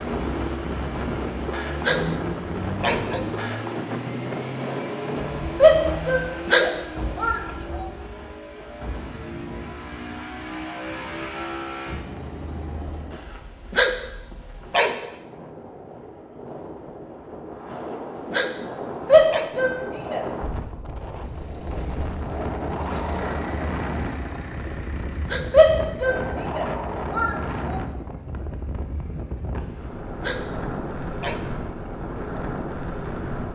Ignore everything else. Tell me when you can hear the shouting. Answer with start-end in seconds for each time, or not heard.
5.5-7.8, 19.1-20.2, 25.5-27.8.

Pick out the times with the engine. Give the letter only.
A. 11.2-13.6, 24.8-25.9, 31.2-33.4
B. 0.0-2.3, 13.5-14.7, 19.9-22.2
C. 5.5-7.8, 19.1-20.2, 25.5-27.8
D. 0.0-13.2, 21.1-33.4
D.